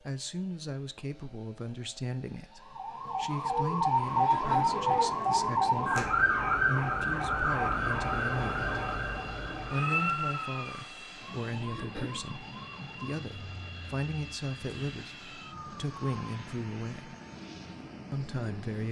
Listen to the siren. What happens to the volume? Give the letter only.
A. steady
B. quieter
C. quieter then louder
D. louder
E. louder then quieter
B.